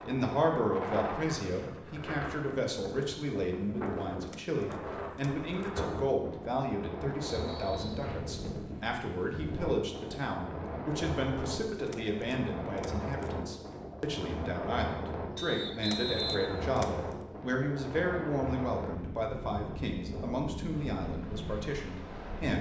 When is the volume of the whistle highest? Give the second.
16 s.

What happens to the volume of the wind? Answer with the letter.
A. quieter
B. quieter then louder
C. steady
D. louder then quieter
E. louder
C.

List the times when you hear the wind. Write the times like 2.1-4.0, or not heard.
0.0-22.5.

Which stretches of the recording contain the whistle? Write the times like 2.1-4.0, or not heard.
7.2-8.1, 15.3-16.8.